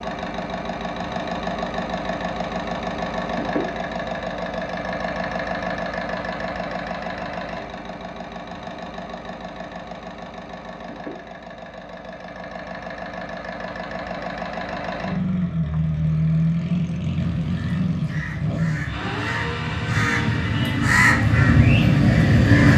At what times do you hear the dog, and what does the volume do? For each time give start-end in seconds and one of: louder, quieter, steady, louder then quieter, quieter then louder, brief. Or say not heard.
not heard.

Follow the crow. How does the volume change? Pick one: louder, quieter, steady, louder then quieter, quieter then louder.
louder.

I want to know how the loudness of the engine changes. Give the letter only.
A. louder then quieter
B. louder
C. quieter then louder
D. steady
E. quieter
C.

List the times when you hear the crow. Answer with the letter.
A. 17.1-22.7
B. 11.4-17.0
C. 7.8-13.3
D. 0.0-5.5
A.